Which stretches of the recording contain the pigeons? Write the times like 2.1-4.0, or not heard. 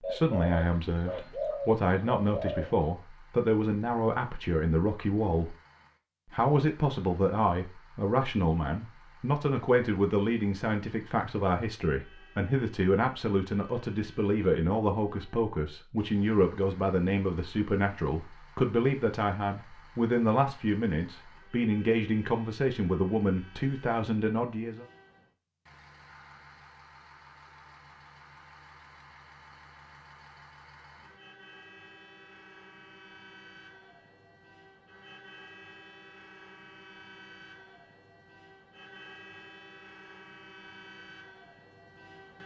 0.0-2.6.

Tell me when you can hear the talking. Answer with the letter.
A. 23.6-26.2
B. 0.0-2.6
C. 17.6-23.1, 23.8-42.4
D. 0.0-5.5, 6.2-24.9
D.